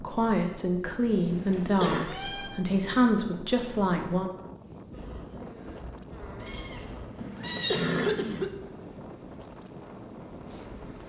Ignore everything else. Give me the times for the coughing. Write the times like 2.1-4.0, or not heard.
1.3-2.1, 7.2-8.5.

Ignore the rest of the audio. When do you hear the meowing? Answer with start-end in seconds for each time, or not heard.
1.1-2.5, 6.4-7.8.